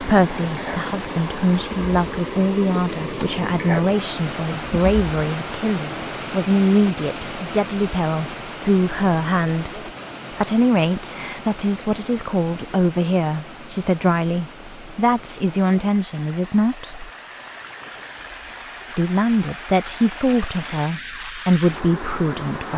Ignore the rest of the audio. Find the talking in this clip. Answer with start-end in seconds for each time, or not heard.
0.0-17.1, 18.9-22.7.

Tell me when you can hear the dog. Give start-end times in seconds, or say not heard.
not heard.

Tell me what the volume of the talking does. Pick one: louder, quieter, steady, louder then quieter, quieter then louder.
steady.